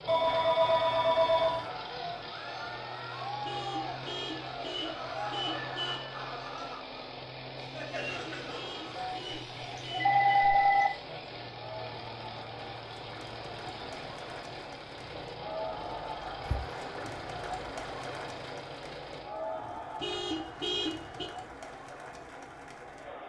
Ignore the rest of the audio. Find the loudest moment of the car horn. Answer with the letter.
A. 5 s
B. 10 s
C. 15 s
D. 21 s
D.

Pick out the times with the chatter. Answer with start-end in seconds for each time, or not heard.
0.1-23.2.